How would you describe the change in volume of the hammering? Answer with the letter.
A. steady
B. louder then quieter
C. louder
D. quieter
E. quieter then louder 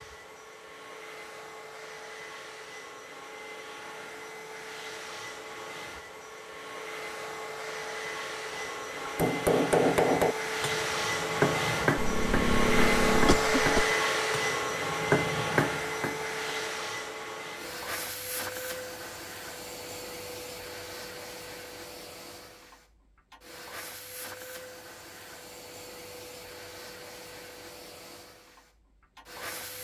E.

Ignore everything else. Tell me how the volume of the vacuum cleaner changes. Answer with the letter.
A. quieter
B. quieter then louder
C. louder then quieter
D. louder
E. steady
C.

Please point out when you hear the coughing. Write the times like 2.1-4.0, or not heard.
11.9-13.9.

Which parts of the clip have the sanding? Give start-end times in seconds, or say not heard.
not heard.